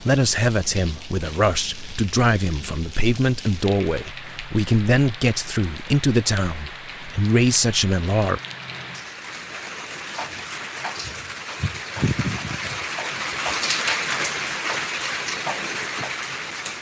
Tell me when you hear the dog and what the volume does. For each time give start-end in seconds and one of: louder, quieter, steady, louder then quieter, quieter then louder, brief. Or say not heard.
not heard.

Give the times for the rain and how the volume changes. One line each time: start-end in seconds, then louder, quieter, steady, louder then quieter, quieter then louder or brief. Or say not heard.
0.0-16.7 louder.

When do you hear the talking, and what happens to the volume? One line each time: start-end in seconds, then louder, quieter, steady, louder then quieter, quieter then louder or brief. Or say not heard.
0.0-8.4 steady.